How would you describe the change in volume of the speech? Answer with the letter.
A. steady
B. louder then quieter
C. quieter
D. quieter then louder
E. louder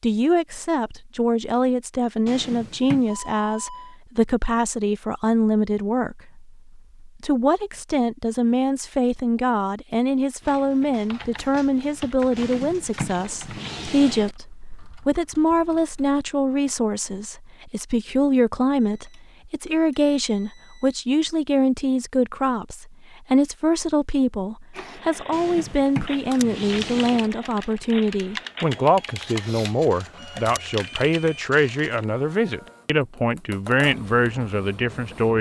A.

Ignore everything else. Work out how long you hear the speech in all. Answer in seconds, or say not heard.
35 s.